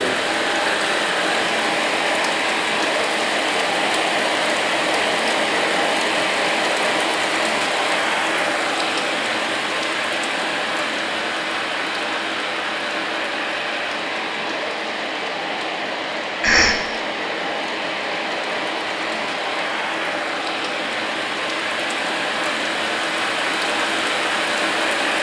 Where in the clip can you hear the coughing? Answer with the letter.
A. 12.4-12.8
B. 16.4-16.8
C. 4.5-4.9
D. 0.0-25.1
B.